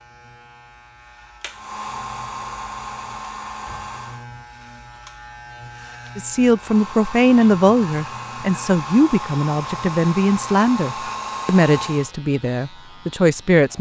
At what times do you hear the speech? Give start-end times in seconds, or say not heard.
6.2-13.7.